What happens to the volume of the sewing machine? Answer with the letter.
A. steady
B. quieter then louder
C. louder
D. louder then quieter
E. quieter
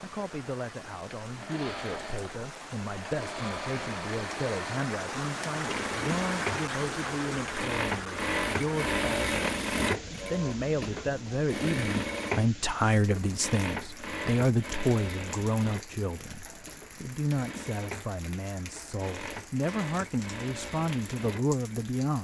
D.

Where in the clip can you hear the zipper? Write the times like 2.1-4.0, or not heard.
not heard.